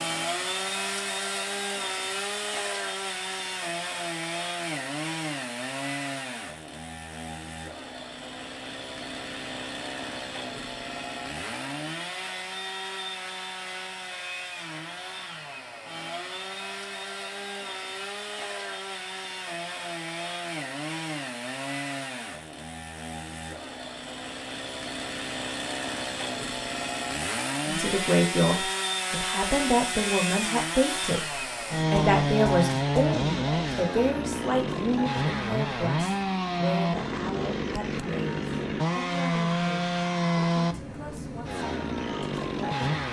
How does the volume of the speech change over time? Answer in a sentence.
The loudness of the speech goes down.